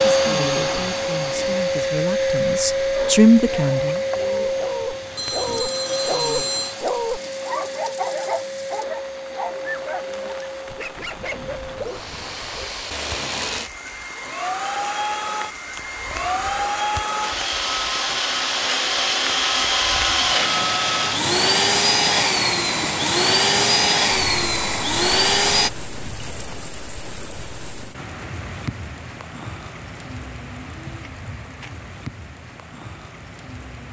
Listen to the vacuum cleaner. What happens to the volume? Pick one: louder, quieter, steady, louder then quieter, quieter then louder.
quieter then louder.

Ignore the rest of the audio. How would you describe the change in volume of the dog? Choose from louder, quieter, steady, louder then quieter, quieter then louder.
quieter.